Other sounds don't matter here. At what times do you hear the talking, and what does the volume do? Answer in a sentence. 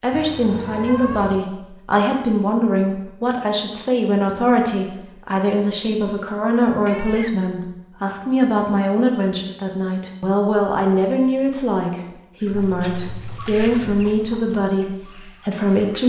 You can hear the talking from 0.0 to 16.0 s, at a steady volume.